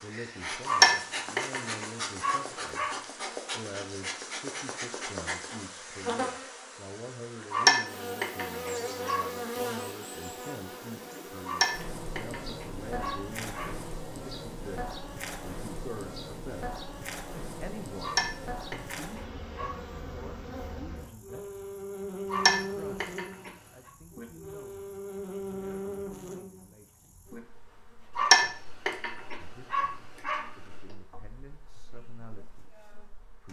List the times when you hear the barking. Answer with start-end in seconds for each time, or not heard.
0.7-3.0, 7.5-9.2, 11.4-13.8, 18.0-19.8, 22.3-23.5, 28.1-30.4.